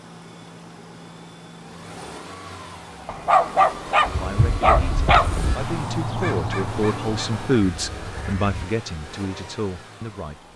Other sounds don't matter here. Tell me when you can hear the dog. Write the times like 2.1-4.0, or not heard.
3.0-5.6.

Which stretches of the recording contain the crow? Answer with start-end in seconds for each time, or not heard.
4.0-8.7.